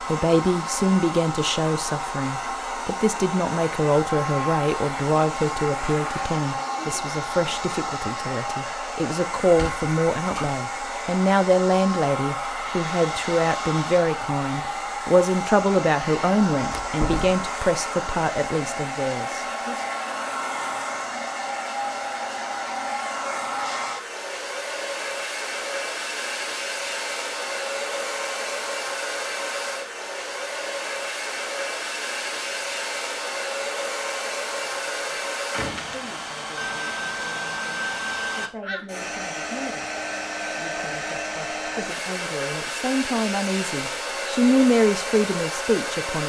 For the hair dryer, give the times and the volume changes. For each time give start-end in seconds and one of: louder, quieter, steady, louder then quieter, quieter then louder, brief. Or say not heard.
0.0-46.2 steady.